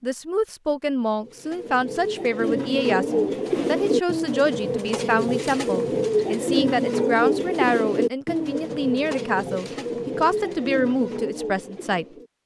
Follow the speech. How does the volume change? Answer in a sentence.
The loudness of the speech stays about the same.